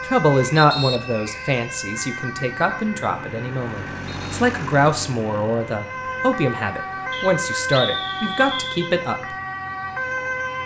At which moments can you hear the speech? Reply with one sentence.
You can hear the speech from 0.1 to 9.3 s.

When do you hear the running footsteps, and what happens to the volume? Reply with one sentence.
The running footsteps can't be heard in this clip.